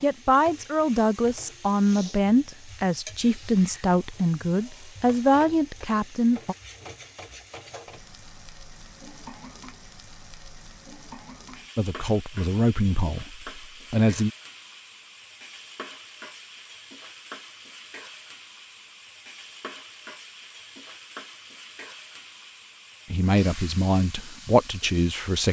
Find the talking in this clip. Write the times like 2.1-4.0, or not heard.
0.0-6.5, 11.8-14.3, 23.1-25.4.